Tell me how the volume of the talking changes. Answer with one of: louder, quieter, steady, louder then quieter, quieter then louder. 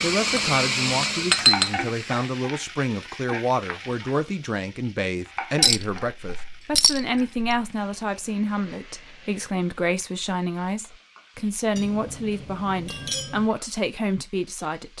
steady.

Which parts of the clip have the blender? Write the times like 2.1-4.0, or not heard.
0.0-2.5.